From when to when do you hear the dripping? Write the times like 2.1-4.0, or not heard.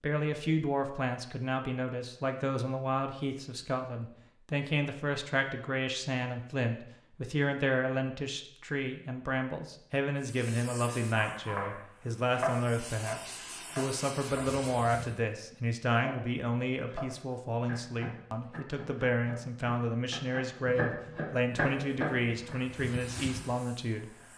not heard.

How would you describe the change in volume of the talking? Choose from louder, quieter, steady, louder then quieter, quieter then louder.
steady.